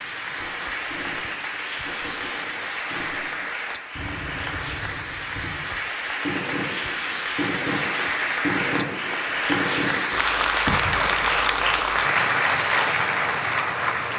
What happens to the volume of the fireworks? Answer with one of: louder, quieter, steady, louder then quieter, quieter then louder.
louder.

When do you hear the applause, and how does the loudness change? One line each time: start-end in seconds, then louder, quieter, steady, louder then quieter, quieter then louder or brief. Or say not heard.
0.0-14.1 louder.